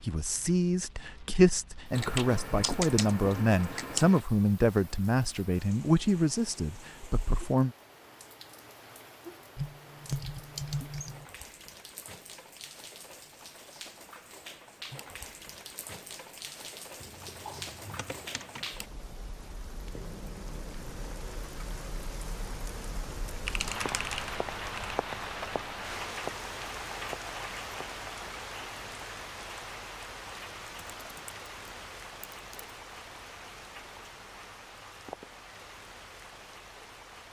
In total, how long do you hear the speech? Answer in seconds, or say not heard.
8 s.